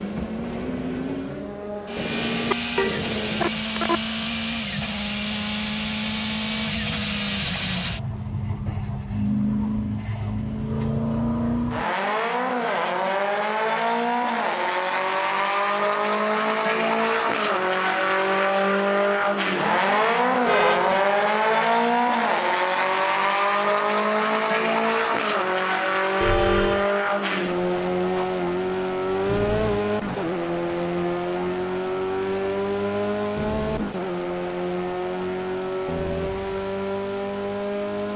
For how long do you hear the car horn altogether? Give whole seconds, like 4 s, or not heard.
3 s.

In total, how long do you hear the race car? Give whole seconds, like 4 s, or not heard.
38 s.